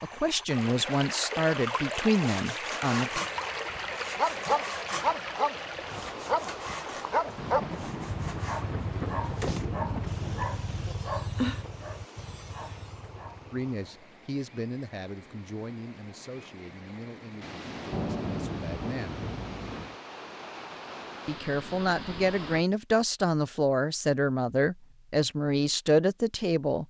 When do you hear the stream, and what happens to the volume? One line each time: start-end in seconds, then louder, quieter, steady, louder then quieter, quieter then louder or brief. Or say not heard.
0.0-22.6 quieter then louder.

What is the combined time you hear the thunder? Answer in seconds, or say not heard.
6 s.